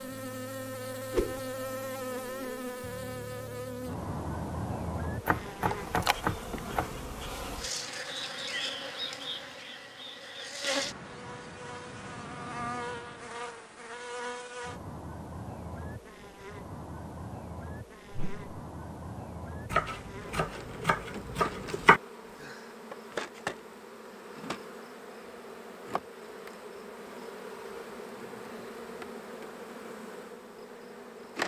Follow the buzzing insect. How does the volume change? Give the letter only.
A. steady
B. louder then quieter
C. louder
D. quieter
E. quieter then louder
D.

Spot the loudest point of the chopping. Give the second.
22 s.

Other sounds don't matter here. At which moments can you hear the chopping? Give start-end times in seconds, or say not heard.
5.2-7.0, 19.7-22.0.